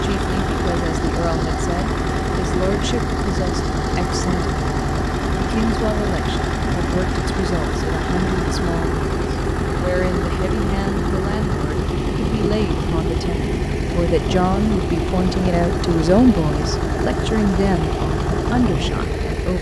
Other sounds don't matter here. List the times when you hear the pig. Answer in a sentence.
The pig can't be heard in this clip.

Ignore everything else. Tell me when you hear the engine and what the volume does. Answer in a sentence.
You can hear the engine from 0.0 to 19.5 s, at a steady volume.